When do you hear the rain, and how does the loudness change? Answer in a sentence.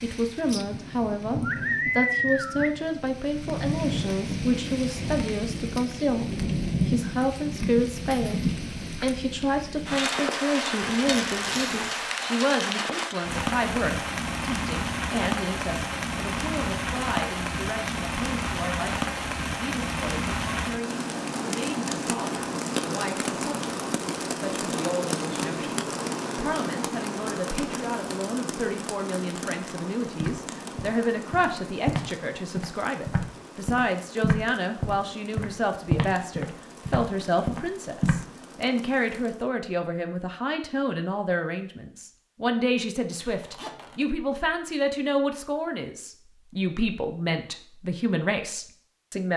The rain can be heard from 0.0 to 39.5 s, getting quieter.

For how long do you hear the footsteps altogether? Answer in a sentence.
You can hear the footsteps for 8 seconds altogether.